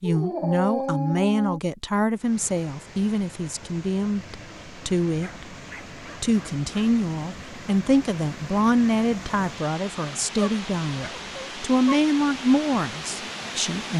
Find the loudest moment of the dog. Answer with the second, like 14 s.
1 s.